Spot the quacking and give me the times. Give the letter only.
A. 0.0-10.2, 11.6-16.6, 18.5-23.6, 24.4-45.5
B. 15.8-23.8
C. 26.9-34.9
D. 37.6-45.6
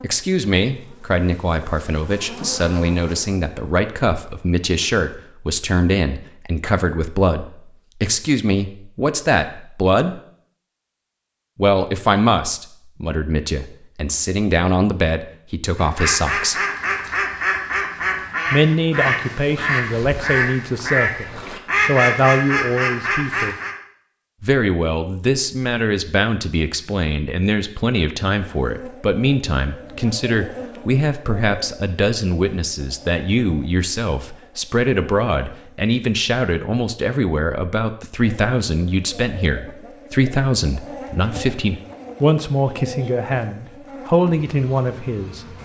B.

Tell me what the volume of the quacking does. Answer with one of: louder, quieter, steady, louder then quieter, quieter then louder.
steady.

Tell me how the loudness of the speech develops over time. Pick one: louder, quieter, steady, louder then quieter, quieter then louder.
steady.